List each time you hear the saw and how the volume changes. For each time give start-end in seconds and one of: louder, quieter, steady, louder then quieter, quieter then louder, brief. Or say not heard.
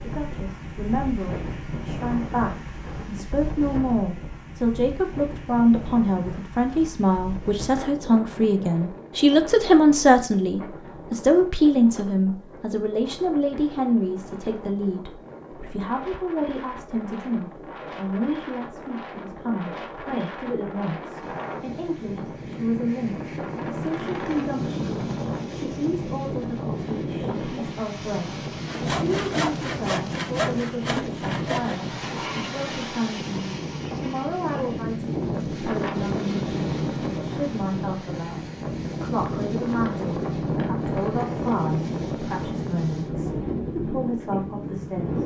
28.6-34.8 quieter.